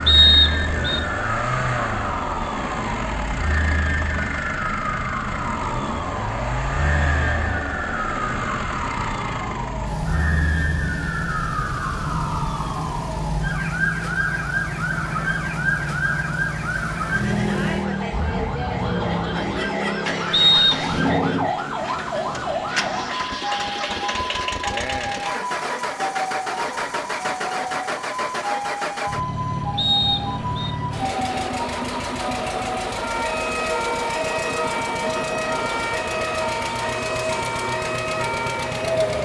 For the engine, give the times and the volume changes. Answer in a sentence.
You can hear the engine from 0.0 to 39.2 s, at a steady volume.